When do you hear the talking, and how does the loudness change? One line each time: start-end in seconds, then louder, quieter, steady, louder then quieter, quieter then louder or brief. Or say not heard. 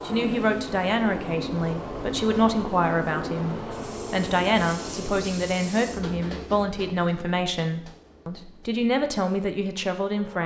0.1-10.4 steady.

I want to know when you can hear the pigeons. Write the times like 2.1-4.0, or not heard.
not heard.